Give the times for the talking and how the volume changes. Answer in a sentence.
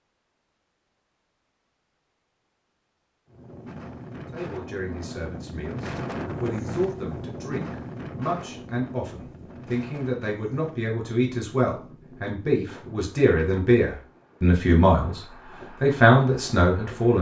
You can hear the talking from 4.3 to 17.1 s, getting louder.